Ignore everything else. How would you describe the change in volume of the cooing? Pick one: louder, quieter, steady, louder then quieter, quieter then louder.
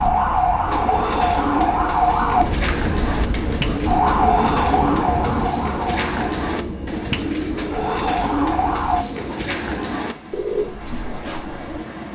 steady.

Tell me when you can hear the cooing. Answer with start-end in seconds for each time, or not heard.
0.7-11.8.